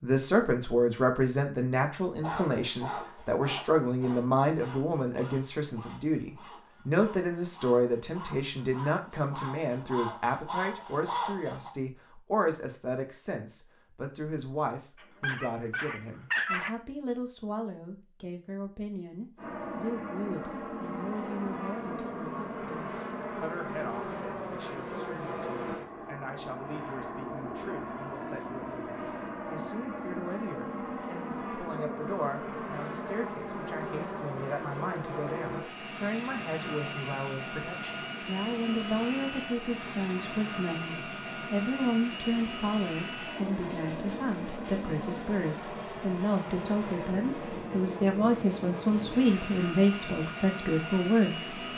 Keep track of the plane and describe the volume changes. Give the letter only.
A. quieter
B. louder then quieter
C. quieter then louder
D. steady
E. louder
D.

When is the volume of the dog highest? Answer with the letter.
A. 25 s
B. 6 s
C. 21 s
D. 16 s
D.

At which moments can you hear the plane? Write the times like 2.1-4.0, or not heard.
19.4-51.7.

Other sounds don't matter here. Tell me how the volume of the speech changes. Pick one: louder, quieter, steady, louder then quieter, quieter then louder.
quieter then louder.